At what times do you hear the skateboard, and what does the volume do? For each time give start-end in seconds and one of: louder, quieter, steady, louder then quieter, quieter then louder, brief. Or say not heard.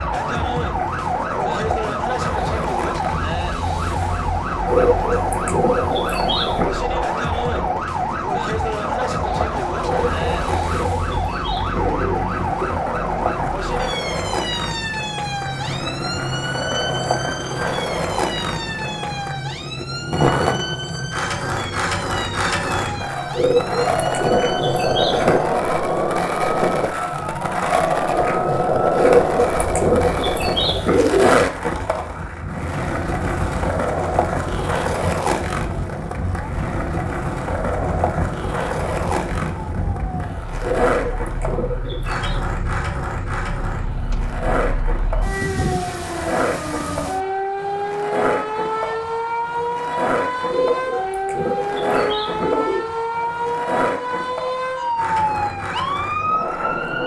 0.0-57.0 louder then quieter.